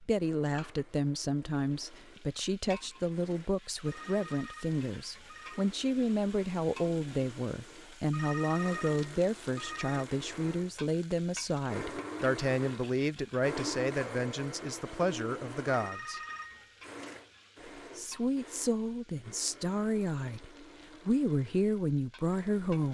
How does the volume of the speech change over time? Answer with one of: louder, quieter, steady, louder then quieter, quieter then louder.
steady.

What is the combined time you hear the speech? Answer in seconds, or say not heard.
21 s.